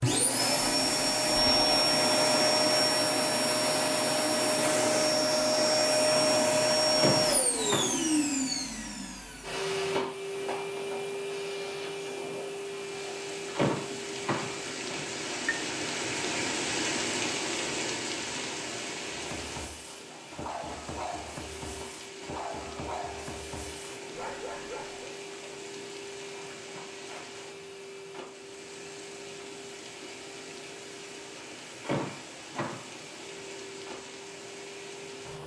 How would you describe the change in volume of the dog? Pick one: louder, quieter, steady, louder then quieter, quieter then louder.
steady.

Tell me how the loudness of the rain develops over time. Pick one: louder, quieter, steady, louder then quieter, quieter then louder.
quieter.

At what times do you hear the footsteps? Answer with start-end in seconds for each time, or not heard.
not heard.